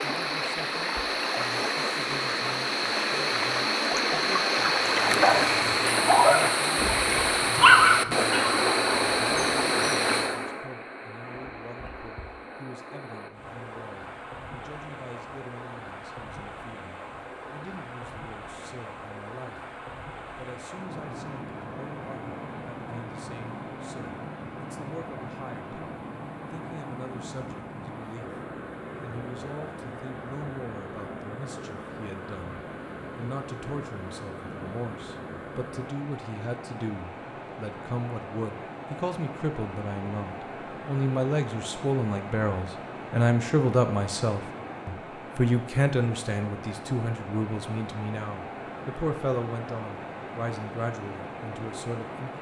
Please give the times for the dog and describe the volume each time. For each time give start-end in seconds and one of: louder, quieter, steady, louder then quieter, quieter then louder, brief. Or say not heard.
4.9-10.2 louder then quieter.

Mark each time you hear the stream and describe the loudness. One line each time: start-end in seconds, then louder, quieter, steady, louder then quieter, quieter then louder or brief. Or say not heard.
0.0-52.3 quieter.